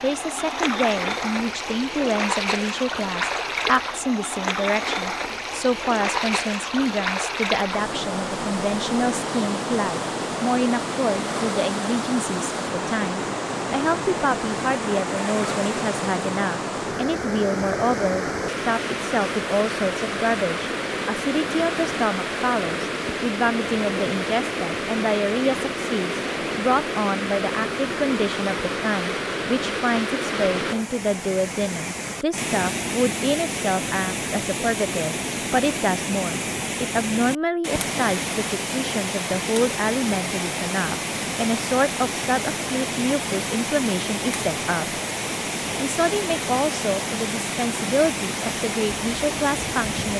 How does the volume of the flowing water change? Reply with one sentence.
The volume of the flowing water stays about the same.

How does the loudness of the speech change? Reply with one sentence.
The loudness of the speech stays about the same.